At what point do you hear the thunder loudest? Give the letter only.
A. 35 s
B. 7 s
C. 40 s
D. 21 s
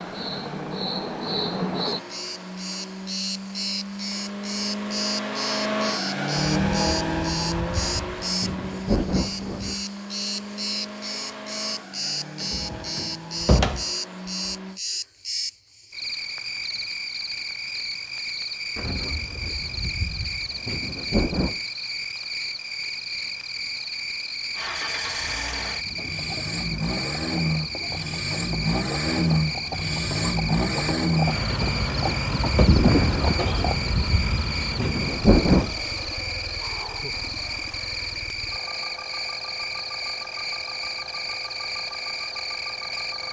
A.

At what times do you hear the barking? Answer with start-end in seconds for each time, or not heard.
not heard.